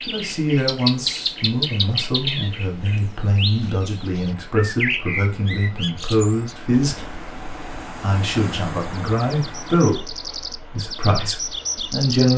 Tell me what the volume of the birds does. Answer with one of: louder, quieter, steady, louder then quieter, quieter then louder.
quieter then louder.